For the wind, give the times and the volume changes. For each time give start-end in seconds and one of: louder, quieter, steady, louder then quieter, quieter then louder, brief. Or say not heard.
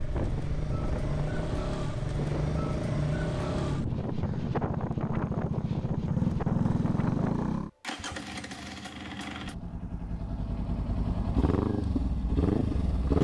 0.0-7.6 steady.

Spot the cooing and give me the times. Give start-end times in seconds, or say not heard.
not heard.